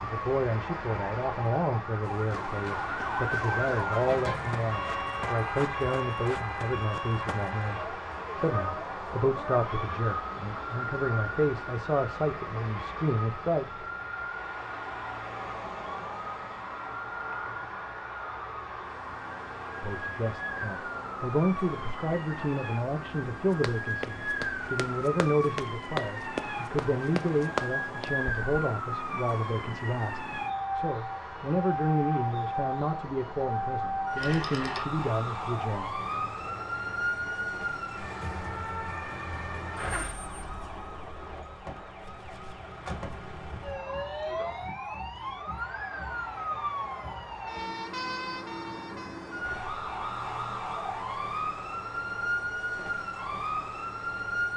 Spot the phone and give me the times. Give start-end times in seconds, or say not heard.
34.1-34.9.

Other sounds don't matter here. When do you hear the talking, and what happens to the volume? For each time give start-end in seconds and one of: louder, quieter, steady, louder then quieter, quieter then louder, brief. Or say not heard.
0.0-13.7 steady
19.8-36.0 steady.